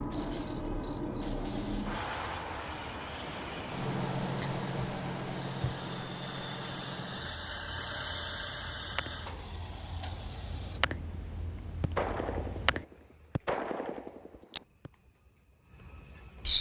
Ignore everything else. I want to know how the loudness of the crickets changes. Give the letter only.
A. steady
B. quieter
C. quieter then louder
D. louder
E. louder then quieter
C.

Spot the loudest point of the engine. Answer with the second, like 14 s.
8 s.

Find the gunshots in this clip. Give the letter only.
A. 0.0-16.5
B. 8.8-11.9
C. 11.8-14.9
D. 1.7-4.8
C.